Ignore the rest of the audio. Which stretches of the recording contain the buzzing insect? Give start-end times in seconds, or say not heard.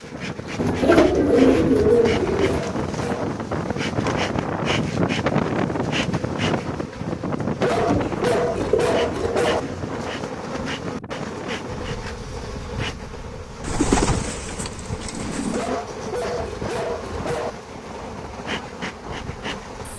0.0-19.9.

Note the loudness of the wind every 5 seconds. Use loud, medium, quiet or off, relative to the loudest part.
loud, loud, medium, quiet.